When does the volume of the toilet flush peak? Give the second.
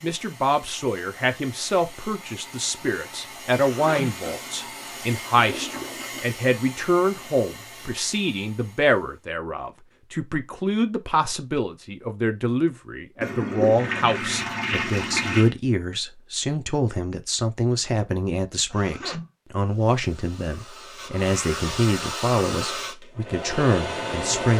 15 s.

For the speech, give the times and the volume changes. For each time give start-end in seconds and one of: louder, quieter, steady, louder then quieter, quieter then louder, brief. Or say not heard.
0.0-24.5 steady.